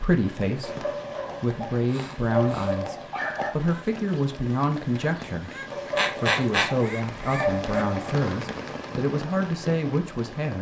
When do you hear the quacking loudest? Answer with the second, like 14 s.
6 s.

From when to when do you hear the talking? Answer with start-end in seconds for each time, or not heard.
0.0-10.5.